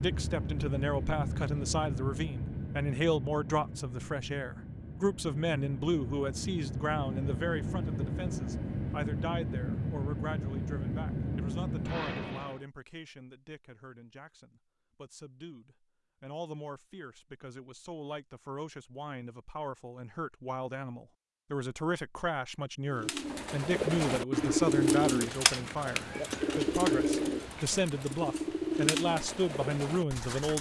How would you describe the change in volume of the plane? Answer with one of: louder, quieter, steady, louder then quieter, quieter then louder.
quieter then louder.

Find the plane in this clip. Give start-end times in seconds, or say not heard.
0.0-12.6.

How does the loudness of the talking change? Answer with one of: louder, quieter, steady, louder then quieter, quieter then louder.
quieter then louder.